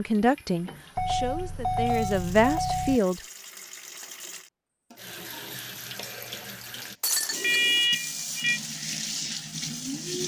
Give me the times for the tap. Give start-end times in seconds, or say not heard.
0.0-10.2.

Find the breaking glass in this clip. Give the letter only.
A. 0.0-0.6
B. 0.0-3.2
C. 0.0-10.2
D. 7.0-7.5
D.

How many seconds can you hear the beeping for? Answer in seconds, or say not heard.
3 s.